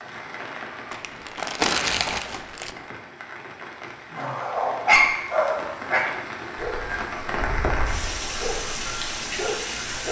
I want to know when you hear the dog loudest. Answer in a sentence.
The loudest moment of the dog is at 5 seconds.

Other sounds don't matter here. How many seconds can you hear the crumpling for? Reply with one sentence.
The crumpling can be heard for 2 seconds in total.